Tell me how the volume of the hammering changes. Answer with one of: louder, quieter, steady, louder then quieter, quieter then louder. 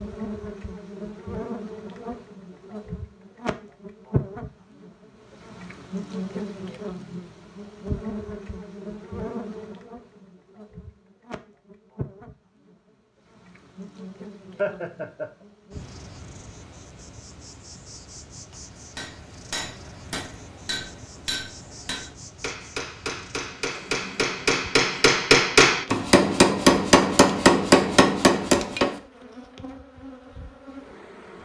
louder.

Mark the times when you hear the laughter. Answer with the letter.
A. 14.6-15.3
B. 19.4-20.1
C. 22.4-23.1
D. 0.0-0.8
A.